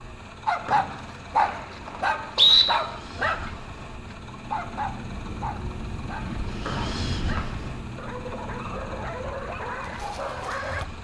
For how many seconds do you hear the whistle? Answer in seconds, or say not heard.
3 s.